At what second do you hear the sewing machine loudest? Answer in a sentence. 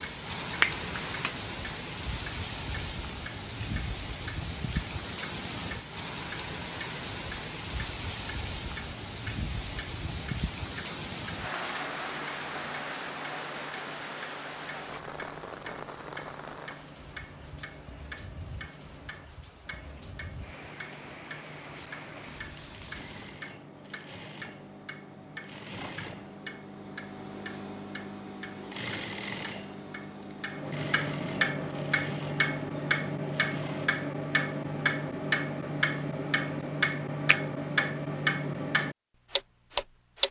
The volume of the sewing machine peaks at 29 seconds.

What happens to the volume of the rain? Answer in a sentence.
The loudness of the rain goes down.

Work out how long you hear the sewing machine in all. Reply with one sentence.
You can hear the sewing machine for 11 seconds altogether.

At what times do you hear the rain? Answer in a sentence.
You can hear the rain from 0.0 to 23.4 s.